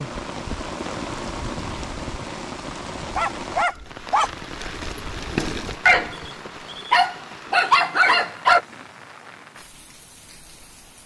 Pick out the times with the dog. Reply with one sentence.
The dog can be heard from 3.1 to 8.6 s.